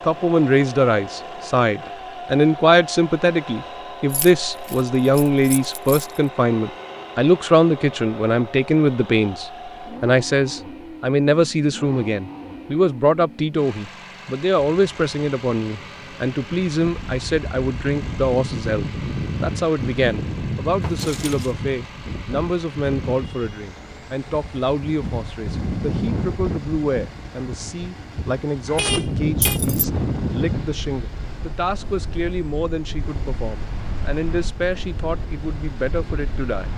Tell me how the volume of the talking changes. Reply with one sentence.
The volume of the talking goes down.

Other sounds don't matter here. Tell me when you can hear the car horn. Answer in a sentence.
The car horn can be heard from 28.6 to 29.6 s.